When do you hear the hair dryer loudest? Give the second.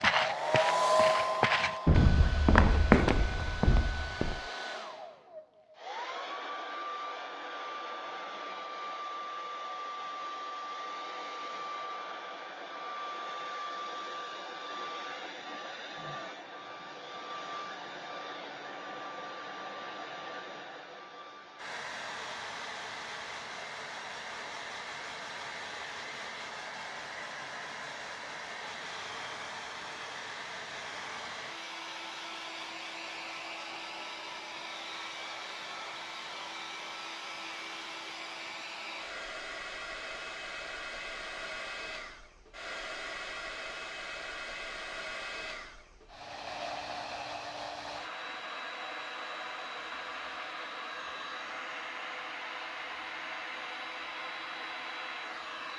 1 s.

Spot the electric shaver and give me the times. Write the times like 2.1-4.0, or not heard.
not heard.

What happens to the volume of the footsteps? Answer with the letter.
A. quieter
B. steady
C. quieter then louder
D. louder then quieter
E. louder
D.